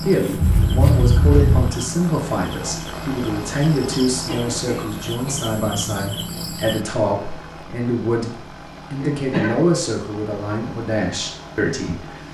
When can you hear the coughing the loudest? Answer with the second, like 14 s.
1 s.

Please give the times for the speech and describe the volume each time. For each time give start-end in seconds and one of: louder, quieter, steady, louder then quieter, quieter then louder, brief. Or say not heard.
0.0-12.2 steady.